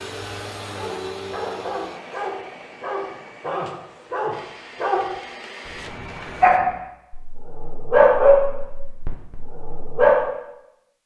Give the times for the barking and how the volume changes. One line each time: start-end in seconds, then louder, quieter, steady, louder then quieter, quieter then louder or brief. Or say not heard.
0.7-10.2 louder.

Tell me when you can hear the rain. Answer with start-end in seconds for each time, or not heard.
not heard.